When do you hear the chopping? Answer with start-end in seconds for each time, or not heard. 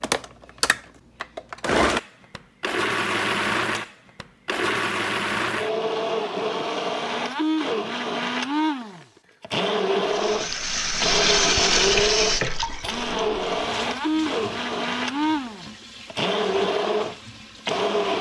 not heard.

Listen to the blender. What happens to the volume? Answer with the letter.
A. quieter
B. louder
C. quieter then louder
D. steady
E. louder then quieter
D.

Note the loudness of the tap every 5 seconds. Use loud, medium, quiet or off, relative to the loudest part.
off, off, loud, quiet.